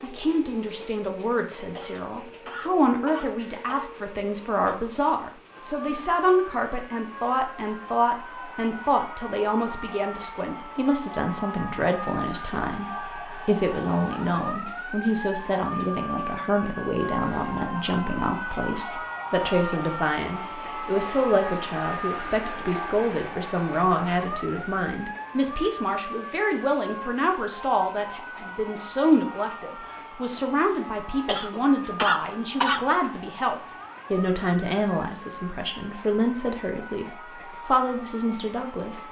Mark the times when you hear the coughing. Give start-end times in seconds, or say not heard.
1.8-4.0, 31.2-32.9.